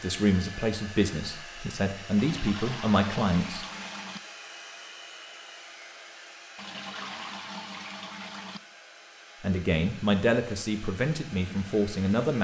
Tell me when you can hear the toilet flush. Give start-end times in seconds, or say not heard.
2.1-4.2, 6.5-8.6.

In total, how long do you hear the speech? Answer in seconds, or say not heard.
7 s.